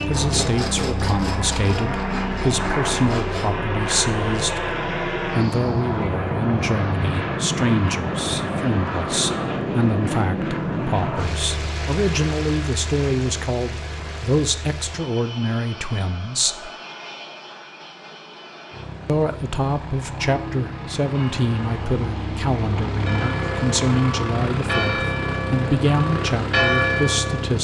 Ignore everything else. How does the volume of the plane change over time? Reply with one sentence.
The volume of the plane goes down, then up.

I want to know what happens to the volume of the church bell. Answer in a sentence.
The loudness of the church bell goes up.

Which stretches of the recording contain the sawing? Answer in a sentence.
You can hear the sawing from 0.0 to 3.5 s.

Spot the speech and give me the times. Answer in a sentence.
You can hear the speech from 0.0 to 16.7 s and from 19.1 to 27.6 s.